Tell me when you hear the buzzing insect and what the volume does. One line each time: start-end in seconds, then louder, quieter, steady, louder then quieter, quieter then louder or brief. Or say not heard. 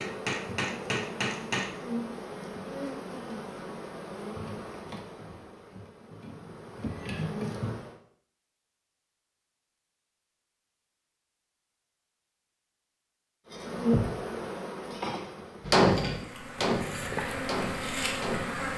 0.0-8.0 quieter then louder
13.4-18.7 quieter then louder.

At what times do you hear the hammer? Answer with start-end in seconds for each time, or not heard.
0.0-1.7, 15.7-18.7.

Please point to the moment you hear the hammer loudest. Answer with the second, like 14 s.
16 s.